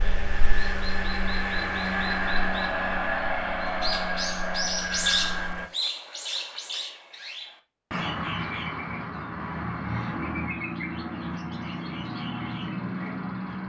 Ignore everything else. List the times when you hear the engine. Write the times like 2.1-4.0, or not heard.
0.0-5.7.